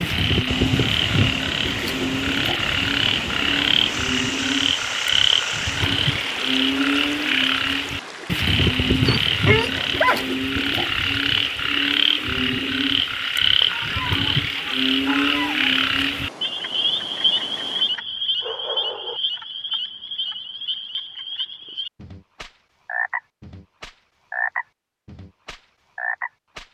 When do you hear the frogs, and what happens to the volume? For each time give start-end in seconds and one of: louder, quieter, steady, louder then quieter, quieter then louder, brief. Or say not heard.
0.0-26.6 quieter.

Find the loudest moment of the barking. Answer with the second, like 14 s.
10 s.